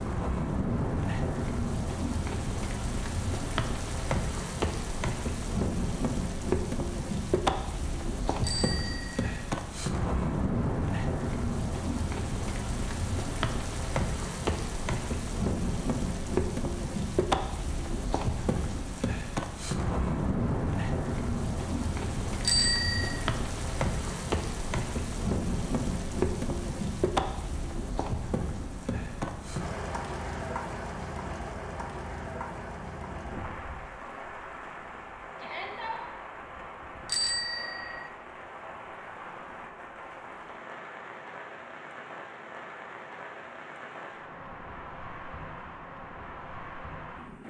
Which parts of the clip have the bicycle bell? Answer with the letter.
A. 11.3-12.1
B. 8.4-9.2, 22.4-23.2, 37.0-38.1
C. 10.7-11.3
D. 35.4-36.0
B.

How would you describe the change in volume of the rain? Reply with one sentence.
The volume of the rain goes down.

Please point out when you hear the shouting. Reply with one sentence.
You can hear the shouting from 35.4 to 36.0 s.